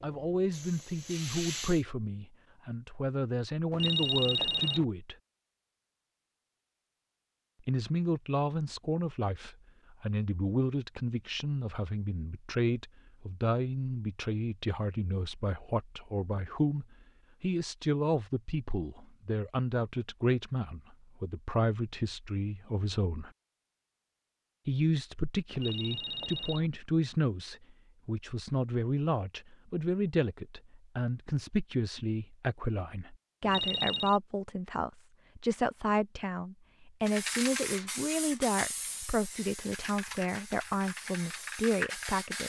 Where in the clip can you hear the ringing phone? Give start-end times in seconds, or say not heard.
3.7-4.8, 25.6-26.7, 33.4-34.2.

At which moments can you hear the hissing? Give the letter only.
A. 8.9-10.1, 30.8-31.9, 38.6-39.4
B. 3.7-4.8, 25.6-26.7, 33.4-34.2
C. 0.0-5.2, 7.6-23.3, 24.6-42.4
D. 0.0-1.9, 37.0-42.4
D.